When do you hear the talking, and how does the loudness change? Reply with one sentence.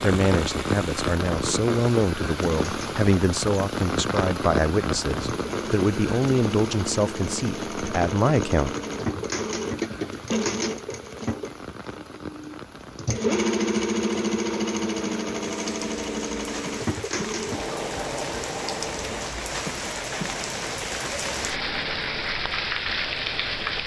You can hear the talking from 0.0 to 8.8 s, at a steady volume.